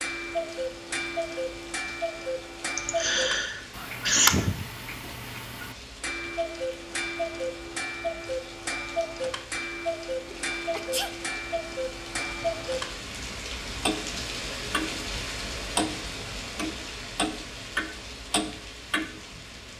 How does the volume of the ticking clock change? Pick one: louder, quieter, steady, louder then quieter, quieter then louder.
steady.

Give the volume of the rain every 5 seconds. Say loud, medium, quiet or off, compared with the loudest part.
medium, medium, loud, loud.